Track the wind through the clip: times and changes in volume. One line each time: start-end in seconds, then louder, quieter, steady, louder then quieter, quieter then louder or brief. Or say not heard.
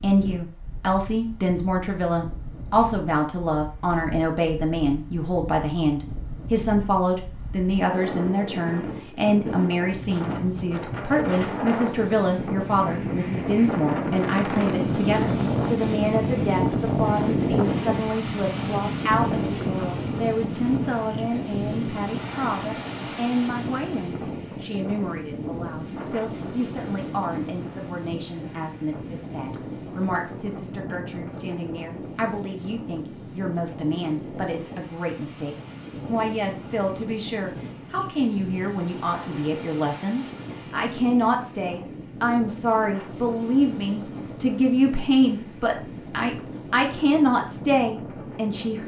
0.0-48.8 louder then quieter.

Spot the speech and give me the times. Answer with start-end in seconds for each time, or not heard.
0.0-48.8.